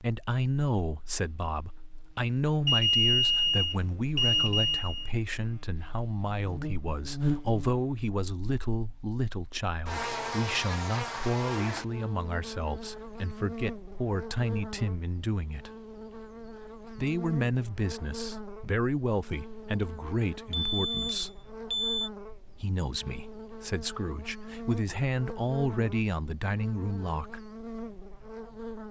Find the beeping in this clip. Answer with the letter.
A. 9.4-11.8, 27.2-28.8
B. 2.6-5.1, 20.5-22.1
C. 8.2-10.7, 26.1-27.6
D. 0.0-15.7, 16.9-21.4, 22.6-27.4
B.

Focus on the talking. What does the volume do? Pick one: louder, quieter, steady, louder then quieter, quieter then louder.
steady.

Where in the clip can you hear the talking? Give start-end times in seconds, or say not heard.
0.0-15.7, 16.9-21.4, 22.6-27.4.